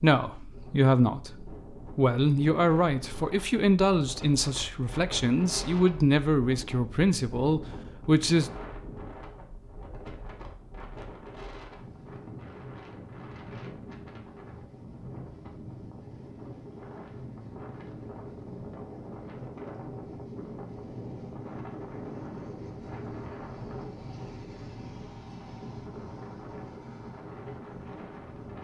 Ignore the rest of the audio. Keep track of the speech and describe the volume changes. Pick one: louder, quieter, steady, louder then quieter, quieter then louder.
steady.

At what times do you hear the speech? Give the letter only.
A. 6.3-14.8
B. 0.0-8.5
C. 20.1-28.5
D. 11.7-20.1
B.